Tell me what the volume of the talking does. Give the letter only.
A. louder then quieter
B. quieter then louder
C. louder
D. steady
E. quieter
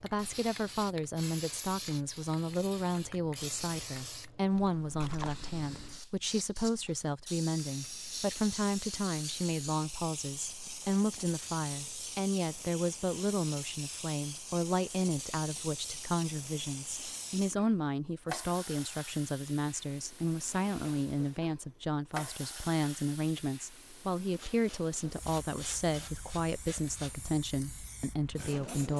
D.